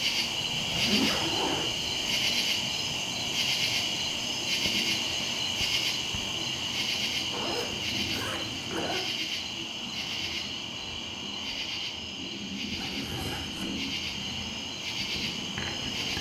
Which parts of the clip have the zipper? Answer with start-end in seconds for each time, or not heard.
0.8-1.7, 7.3-9.0, 12.8-14.3.